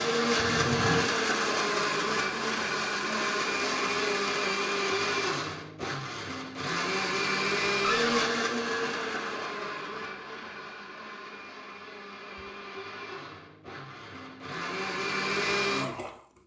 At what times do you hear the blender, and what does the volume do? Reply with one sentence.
The blender can be heard from 0.0 to 16.2 s, getting quieter then louder.